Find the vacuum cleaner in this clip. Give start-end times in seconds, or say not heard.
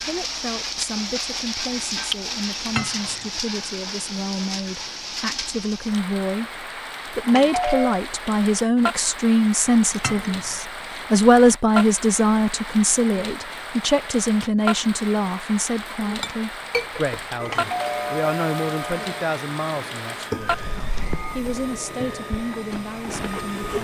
17.4-23.7.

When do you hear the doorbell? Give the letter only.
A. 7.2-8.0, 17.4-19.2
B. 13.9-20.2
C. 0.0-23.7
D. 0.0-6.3
A.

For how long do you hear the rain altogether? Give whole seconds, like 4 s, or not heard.
24 s.